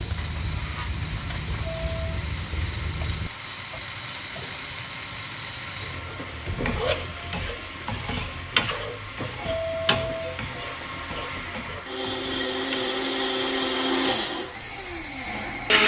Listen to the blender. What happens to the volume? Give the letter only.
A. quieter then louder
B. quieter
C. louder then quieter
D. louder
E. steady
D.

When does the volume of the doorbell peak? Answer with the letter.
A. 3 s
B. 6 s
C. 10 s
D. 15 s
C.